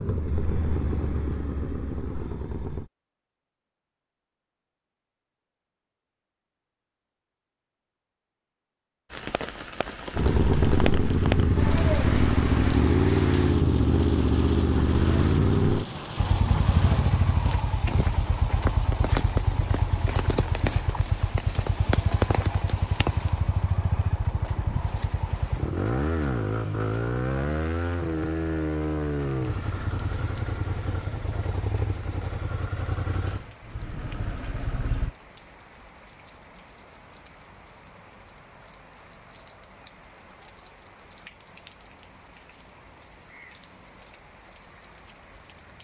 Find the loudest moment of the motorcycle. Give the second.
13 s.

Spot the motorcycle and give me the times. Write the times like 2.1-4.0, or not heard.
0.0-2.9, 10.2-35.1.